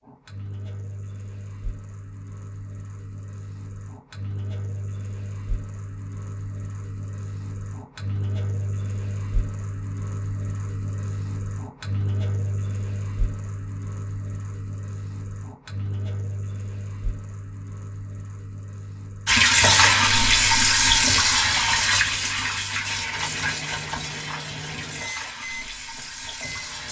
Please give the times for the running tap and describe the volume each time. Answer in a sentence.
The running tap can be heard from 19.2 to 26.8 s, getting quieter.